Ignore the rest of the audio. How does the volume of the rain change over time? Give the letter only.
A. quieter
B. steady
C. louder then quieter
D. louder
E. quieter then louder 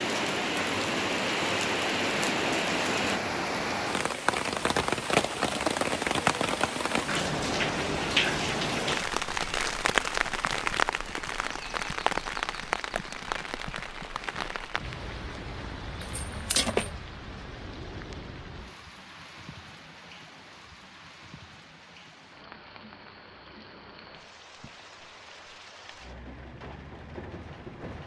A.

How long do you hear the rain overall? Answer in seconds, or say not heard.
28 s.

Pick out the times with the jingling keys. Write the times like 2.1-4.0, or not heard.
16.0-17.0.